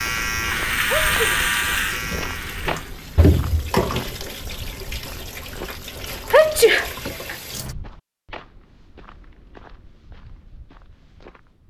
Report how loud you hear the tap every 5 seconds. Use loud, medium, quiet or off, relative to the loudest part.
loud, medium, off.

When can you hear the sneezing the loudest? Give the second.
7 s.